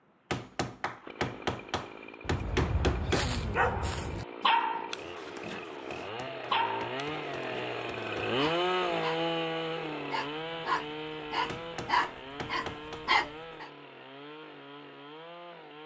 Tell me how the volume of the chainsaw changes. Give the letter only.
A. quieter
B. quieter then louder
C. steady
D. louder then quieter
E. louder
D.